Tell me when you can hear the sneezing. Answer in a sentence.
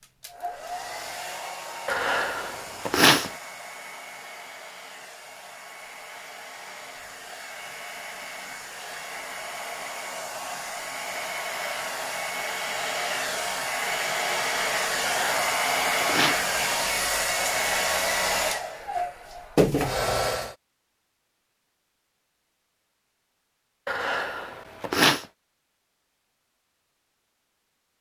The sneezing can be heard from 1.9 to 3.3 s, from 15.0 to 16.4 s and from 23.9 to 25.2 s.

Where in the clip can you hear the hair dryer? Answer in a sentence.
You can hear the hair dryer from 0.0 to 20.6 s.